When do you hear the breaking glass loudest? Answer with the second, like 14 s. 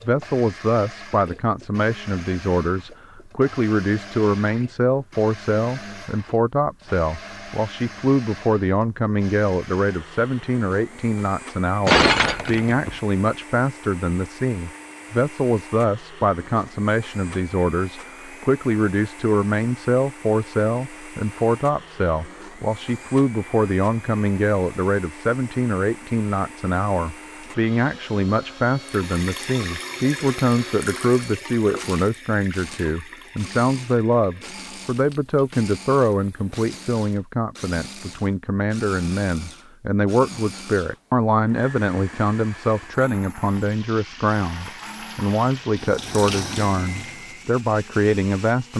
12 s.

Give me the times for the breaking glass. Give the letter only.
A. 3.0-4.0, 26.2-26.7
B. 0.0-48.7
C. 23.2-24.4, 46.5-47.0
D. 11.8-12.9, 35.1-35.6
D.